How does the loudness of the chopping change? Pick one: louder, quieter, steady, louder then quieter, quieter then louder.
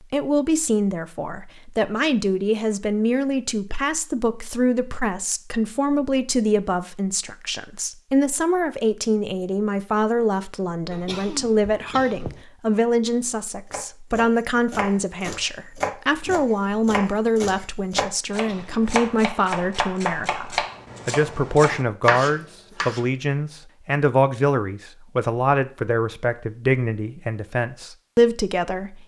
louder.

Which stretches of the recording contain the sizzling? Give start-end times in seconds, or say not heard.
not heard.